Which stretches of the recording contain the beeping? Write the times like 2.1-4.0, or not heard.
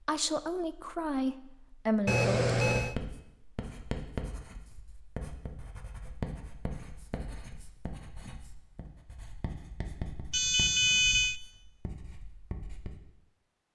2.0-3.0, 10.3-11.4.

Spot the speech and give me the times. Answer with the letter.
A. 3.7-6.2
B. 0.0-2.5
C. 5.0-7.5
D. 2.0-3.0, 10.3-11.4
B.